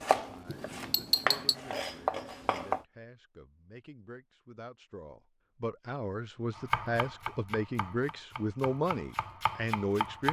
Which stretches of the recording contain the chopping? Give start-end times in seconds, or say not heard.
0.0-2.9, 6.5-10.2.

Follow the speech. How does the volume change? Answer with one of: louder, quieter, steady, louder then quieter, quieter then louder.
louder.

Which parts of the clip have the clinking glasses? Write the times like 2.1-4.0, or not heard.
0.5-1.6.